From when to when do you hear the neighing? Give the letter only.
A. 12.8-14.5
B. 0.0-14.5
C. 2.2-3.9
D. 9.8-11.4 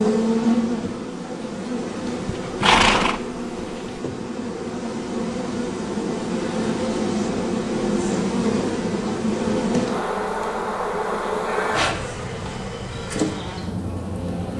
C.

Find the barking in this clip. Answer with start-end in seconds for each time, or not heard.
not heard.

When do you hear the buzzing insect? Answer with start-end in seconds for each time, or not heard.
0.0-14.5.